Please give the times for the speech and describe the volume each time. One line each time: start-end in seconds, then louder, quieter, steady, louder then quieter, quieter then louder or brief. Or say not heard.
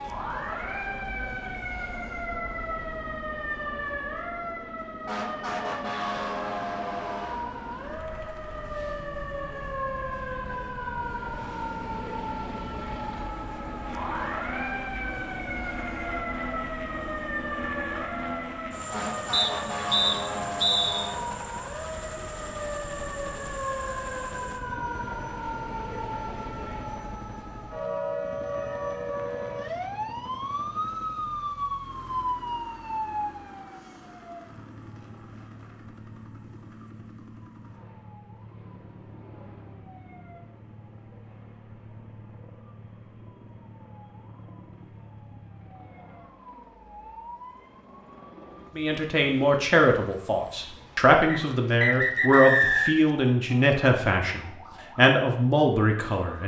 48.8-56.4 steady.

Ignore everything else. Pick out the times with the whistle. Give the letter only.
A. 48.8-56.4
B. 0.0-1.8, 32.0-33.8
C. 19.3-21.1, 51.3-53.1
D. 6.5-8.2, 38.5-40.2
C.